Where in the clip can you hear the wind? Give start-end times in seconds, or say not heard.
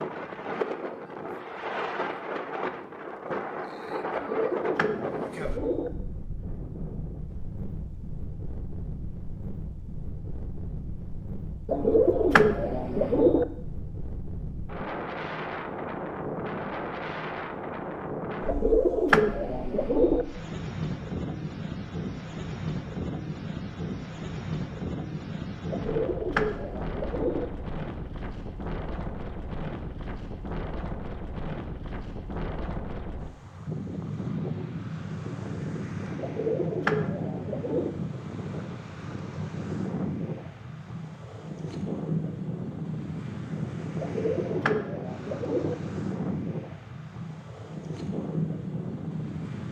0.0-49.6.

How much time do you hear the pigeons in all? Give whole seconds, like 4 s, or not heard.
11 s.